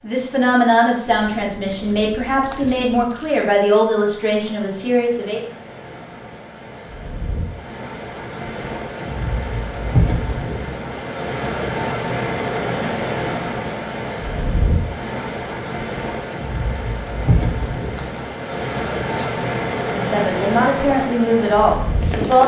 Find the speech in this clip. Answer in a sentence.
The speech can be heard from 0.0 to 5.4 s and from 19.9 to 22.4 s.